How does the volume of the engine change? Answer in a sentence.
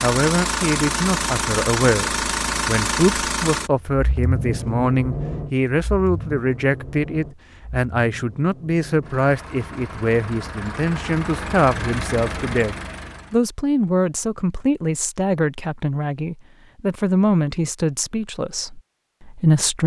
The loudness of the engine goes down, then up.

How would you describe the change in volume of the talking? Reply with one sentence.
The loudness of the talking stays about the same.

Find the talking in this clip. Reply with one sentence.
You can hear the talking from 0.0 to 19.8 s.